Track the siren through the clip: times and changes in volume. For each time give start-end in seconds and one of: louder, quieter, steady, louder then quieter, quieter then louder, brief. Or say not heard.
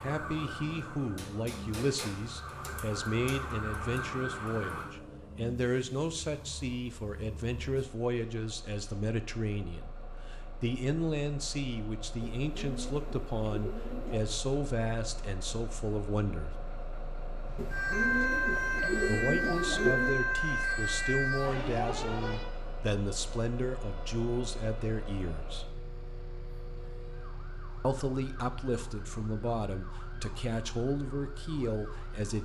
0.0-4.9 louder
17.4-32.4 quieter.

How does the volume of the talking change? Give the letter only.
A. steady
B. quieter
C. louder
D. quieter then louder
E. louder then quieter
A.